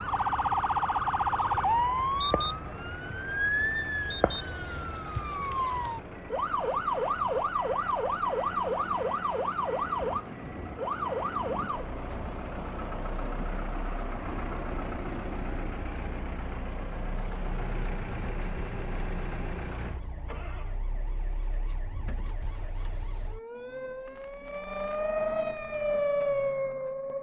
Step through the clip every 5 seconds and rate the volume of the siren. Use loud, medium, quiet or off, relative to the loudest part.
loud, loud, medium, quiet, quiet, loud.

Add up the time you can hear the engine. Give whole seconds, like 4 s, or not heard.
21 s.